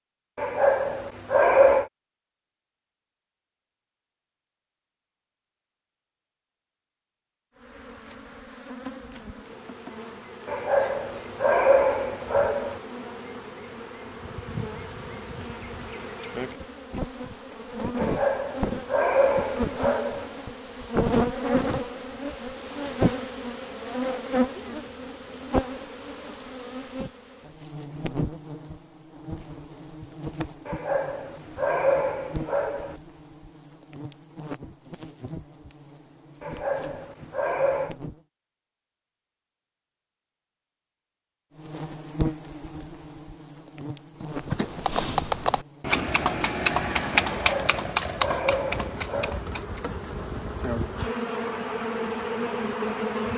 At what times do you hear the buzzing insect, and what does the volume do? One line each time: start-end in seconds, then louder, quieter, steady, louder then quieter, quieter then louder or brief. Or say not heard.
7.5-38.2 louder then quieter
41.5-53.3 quieter then louder.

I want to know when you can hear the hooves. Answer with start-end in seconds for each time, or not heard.
44.2-49.8.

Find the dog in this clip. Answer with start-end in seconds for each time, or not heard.
0.3-1.9, 10.4-12.8, 17.9-20.3, 30.6-33.0, 36.4-38.0, 47.3-49.4.